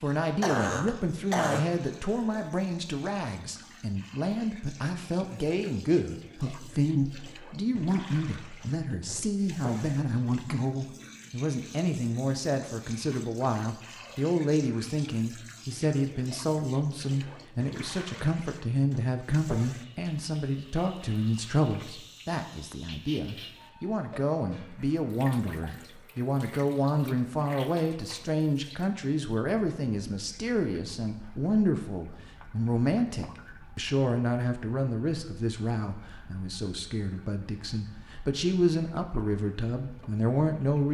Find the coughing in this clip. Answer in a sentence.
You can hear the coughing from 0.4 to 2.4 s.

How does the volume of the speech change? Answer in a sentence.
The loudness of the speech stays about the same.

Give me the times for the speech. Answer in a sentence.
You can hear the speech from 0.0 to 40.8 s.